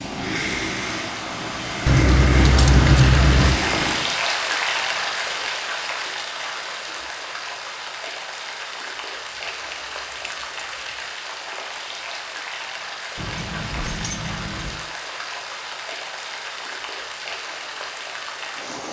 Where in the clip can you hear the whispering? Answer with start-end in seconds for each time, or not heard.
not heard.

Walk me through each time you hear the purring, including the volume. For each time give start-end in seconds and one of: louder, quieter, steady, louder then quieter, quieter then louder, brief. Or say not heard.
0.0-4.1 quieter then louder.